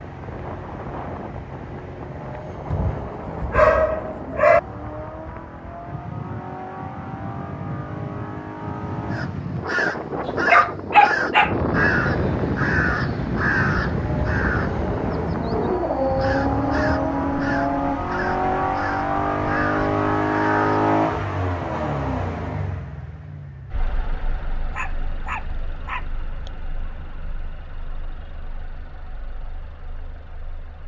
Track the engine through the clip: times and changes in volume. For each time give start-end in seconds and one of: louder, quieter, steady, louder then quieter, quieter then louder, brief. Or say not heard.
0.0-30.8 louder then quieter.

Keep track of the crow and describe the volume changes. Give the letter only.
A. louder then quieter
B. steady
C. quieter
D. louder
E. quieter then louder
C.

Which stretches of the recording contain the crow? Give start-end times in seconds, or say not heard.
9.1-15.6, 16.2-20.9.